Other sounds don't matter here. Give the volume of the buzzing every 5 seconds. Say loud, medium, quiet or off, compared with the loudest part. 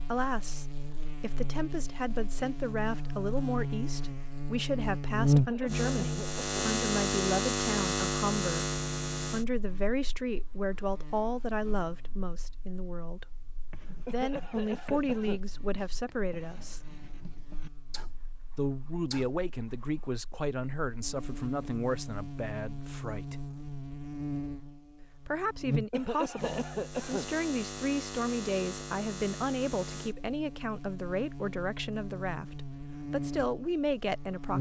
medium, loud, quiet, quiet, medium, medium, medium.